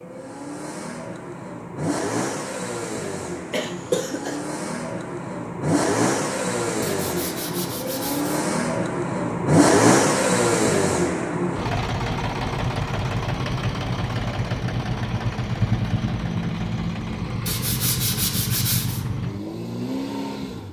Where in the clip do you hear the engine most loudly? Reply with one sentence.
The loudest moment of the engine is at 10 seconds.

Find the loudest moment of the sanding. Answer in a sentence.
The volume of the sanding peaks at 18 seconds.